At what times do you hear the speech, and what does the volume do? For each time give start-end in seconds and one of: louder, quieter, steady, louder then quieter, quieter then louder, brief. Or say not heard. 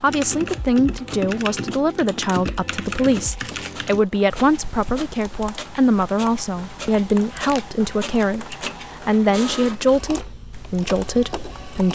0.0-11.8 steady.